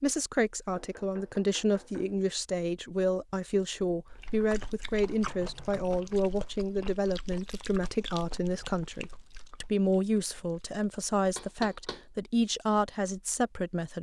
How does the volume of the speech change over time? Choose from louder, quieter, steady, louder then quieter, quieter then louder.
steady.